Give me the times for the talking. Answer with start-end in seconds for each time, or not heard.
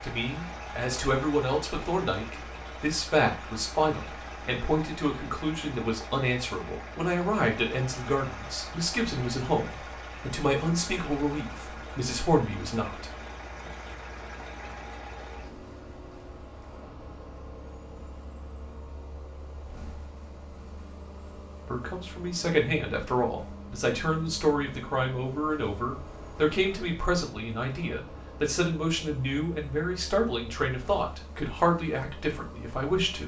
0.0-13.7, 21.6-33.2.